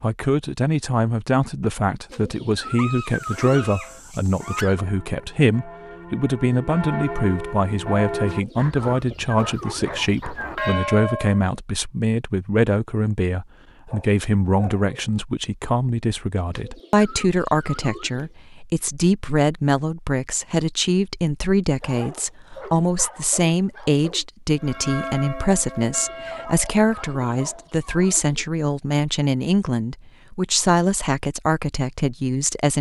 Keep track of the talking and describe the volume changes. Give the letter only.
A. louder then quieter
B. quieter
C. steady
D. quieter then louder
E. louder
C.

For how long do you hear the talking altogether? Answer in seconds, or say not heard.
33 s.